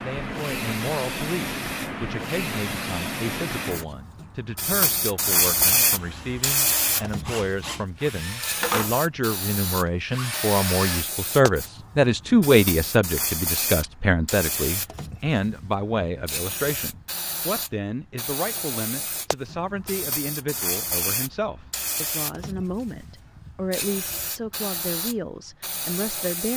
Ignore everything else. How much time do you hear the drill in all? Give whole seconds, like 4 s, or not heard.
5 s.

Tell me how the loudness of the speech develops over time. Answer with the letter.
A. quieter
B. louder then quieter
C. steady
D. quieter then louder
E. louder
B.